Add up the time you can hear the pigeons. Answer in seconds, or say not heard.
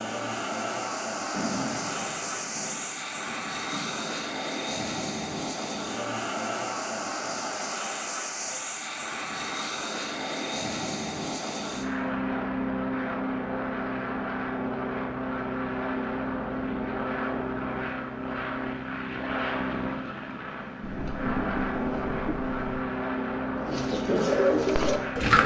2 s.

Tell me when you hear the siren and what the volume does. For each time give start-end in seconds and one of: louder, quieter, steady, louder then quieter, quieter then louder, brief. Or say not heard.
not heard.